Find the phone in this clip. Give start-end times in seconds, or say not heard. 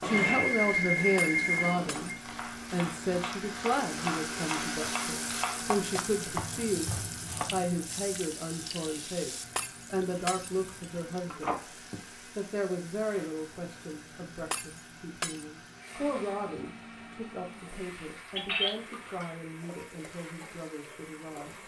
0.0-2.1, 11.3-12.0, 18.4-18.9.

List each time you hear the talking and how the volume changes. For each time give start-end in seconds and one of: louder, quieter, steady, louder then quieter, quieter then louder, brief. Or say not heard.
0.0-2.1 brief
2.7-21.6 quieter.